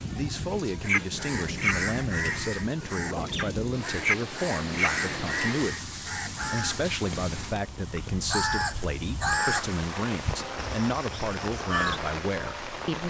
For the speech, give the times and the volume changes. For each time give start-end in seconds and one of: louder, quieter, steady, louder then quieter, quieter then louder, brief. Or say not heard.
0.0-13.0 steady.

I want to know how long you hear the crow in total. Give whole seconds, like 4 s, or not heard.
11 s.